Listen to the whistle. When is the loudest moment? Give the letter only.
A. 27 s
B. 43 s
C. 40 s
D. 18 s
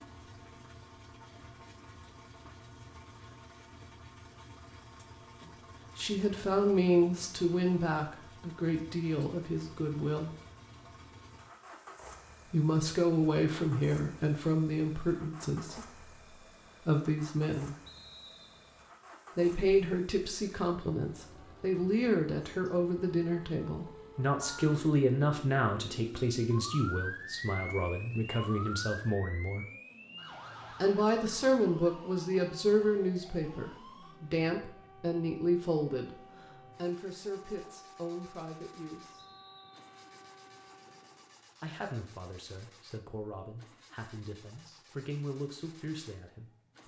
D.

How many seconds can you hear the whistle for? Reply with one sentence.
The whistle can be heard for 2 seconds in total.